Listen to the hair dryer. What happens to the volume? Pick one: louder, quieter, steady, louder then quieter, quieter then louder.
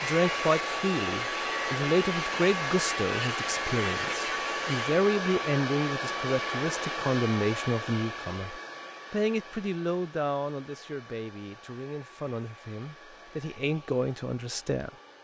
quieter.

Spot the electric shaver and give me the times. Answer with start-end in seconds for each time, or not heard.
0.0-5.0.